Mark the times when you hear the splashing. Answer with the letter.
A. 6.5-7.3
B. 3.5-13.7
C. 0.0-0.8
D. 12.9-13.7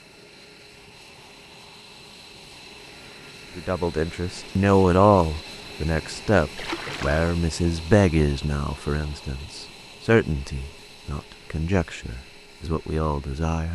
A.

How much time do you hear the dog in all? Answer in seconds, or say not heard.
not heard.